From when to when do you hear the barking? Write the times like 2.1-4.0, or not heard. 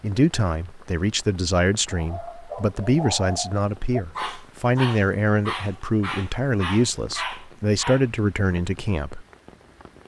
1.9-8.1.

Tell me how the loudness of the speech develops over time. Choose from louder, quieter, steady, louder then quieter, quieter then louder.
steady.